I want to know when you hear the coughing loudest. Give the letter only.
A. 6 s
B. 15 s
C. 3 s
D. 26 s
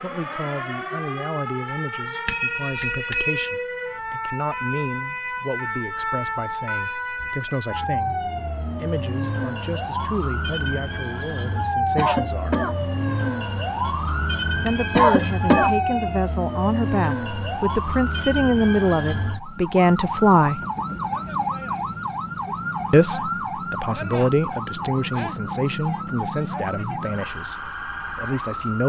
B.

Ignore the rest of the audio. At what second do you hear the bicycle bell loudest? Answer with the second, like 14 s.
3 s.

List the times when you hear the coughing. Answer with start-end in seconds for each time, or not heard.
11.9-12.8, 14.9-15.8.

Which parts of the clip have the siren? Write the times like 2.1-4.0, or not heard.
0.0-28.8.